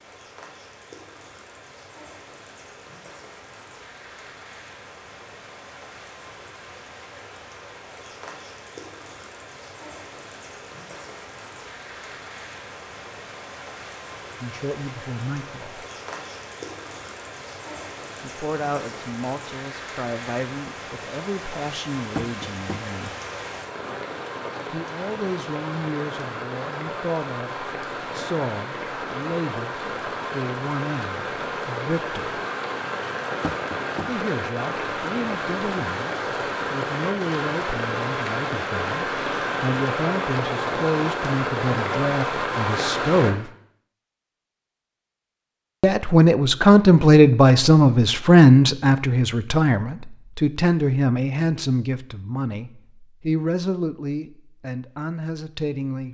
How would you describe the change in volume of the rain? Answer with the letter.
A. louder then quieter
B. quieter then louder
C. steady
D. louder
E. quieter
D.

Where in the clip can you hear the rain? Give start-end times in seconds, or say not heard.
0.0-43.4.